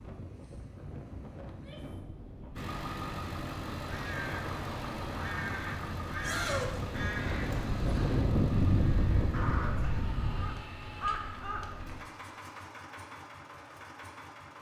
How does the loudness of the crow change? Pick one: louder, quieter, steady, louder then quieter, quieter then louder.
steady.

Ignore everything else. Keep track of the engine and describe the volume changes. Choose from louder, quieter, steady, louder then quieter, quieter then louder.
quieter.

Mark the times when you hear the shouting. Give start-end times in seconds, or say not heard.
1.4-1.9, 6.2-6.8, 9.8-11.4.